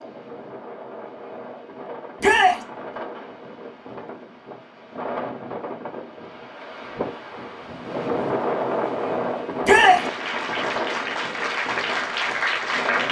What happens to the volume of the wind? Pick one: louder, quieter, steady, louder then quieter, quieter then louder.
louder then quieter.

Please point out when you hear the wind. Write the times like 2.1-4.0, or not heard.
0.0-13.0.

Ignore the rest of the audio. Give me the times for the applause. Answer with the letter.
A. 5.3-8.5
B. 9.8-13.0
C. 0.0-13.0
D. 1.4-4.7
B.